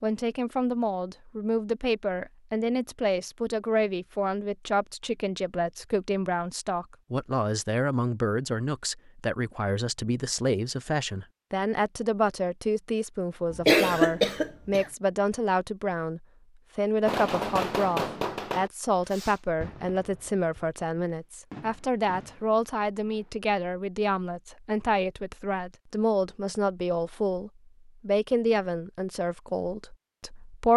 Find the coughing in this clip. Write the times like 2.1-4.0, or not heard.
13.5-14.8.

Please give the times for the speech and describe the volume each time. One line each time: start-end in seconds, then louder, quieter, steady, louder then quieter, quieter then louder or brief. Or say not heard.
0.0-30.7 steady.